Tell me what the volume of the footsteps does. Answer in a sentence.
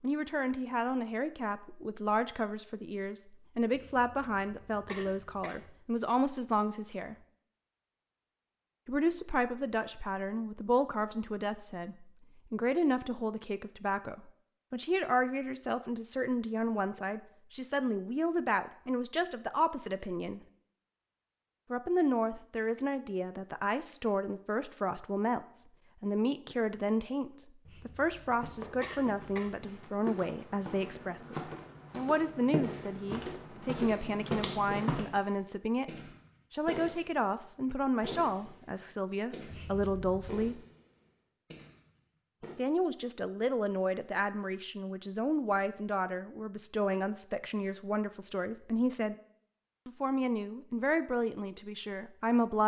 The loudness of the footsteps goes up.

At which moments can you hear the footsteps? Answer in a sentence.
The footsteps can be heard from 28.2 to 35.0 s.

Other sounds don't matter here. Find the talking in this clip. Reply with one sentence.
You can hear the talking from 0.0 to 7.2 s, from 8.8 to 20.4 s, from 21.7 to 35.9 s, from 36.5 to 40.6 s, from 42.5 to 49.1 s and from 49.9 to 52.6 s.